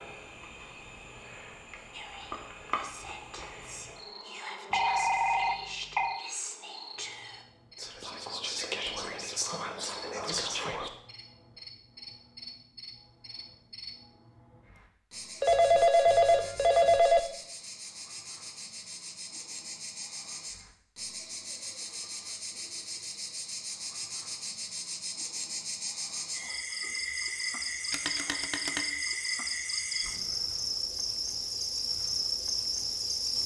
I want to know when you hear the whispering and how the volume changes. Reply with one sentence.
You can hear the whispering from 1.9 to 10.9 s, getting louder.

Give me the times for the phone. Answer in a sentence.
The phone can be heard from 4.7 to 6.2 s, from 15.4 to 17.2 s and from 27.9 to 28.9 s.